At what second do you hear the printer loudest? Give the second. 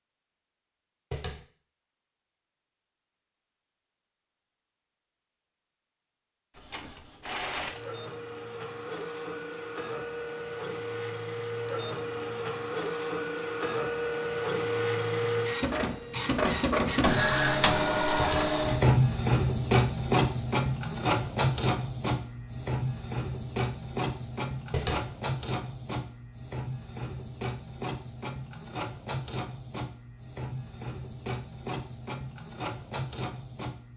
19 s.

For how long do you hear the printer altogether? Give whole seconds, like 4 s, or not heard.
27 s.